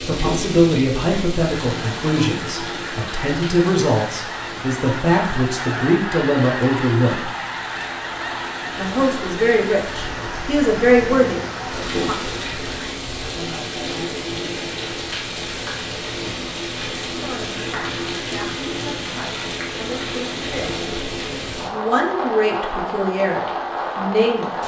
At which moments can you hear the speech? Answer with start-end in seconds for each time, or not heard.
0.1-7.3, 8.8-12.2, 17.1-20.8, 21.6-24.6.